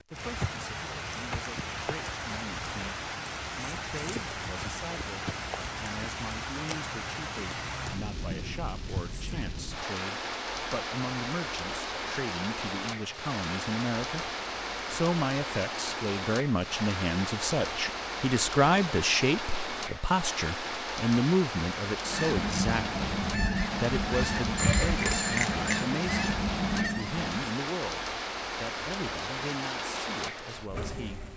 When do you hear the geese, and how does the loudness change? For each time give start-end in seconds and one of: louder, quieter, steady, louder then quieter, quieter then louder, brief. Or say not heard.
22.1-27.5 steady.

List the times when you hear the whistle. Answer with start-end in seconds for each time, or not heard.
not heard.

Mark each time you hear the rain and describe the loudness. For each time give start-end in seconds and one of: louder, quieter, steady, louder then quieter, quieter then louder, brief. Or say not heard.
0.0-31.3 steady.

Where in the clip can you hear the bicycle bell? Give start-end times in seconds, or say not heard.
24.6-25.9.